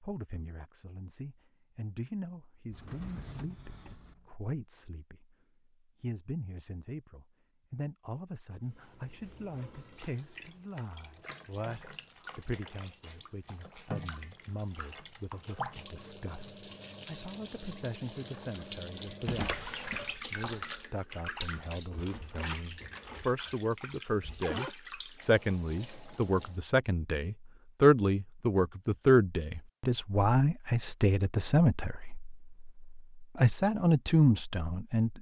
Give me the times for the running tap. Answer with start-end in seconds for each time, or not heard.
8.7-26.6.